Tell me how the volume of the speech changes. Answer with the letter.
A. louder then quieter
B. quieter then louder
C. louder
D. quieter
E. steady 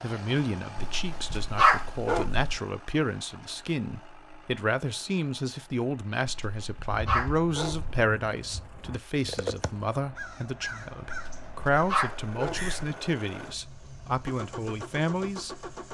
E.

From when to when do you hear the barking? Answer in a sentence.
The barking can be heard from 0.9 to 2.6 s, from 6.2 to 8.1 s and from 11.1 to 12.8 s.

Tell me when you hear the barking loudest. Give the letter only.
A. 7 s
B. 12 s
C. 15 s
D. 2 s
D.